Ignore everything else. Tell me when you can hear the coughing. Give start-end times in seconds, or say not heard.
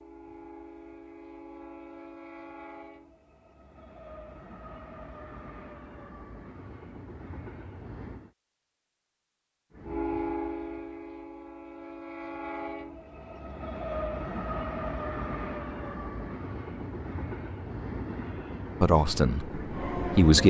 not heard.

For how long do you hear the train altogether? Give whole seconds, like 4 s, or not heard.
19 s.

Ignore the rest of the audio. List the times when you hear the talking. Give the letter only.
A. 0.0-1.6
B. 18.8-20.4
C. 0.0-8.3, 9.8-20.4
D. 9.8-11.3
B.